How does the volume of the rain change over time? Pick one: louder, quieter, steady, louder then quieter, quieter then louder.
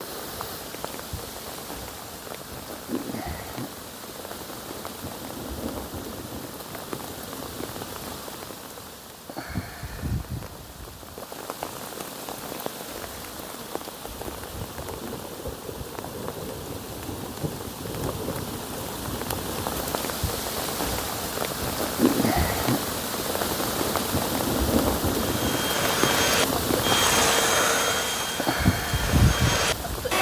louder.